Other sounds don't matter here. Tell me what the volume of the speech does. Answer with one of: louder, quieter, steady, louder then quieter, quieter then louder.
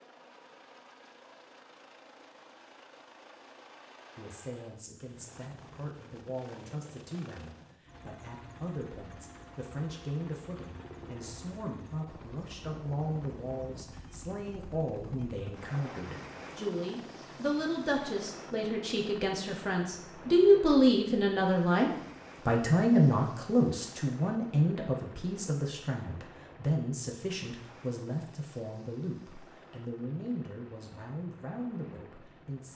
louder then quieter.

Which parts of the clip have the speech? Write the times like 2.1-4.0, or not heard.
4.2-32.7.